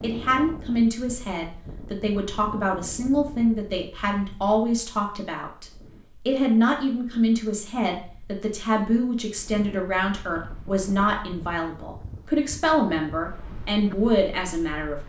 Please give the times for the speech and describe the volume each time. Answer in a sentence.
You can hear the speech from 0.0 to 14.9 s, at a steady volume.